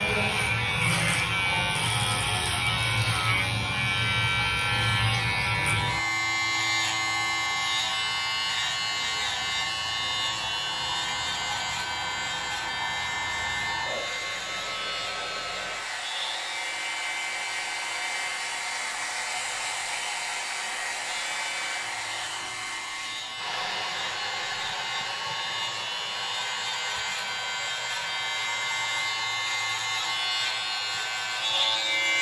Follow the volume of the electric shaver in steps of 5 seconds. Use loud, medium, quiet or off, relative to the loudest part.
loud, loud, medium, medium, medium, medium, loud.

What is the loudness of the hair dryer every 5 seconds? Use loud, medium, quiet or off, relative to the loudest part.
medium, medium, loud, loud, loud, loud, medium.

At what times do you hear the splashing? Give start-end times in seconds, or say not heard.
not heard.